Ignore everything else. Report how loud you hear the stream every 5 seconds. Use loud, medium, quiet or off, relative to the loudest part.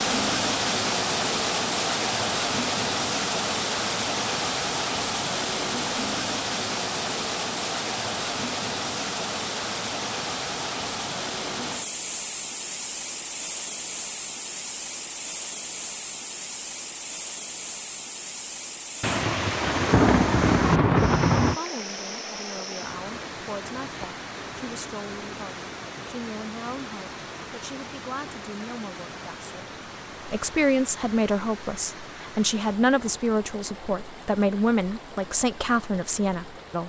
loud, loud, medium, medium, medium, quiet, quiet, quiet.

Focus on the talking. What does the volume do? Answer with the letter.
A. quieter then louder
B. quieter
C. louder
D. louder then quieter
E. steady
C.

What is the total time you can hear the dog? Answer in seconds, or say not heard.
not heard.